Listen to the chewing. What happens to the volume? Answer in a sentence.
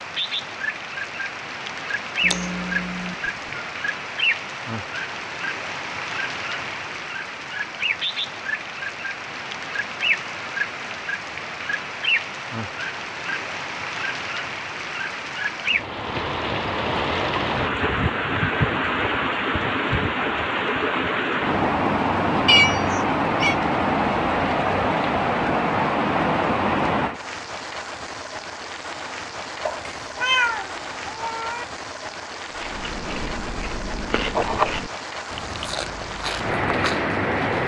The volume of the chewing goes up, then down.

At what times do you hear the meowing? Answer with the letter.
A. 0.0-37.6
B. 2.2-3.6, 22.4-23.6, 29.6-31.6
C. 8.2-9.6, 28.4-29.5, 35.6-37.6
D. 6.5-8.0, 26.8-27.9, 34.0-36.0
B.